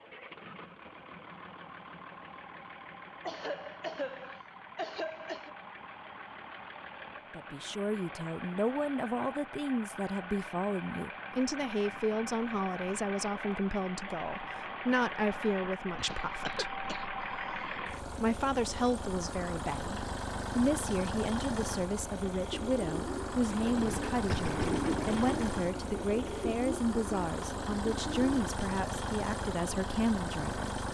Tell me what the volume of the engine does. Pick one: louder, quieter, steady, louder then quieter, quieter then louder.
louder.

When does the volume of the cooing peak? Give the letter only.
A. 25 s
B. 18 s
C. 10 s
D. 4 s
A.